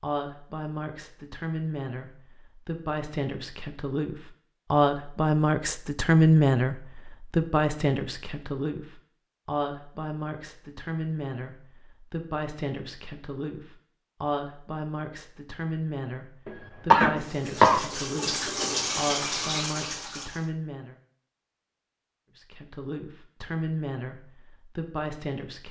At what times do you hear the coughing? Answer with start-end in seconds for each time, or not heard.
16.4-17.9.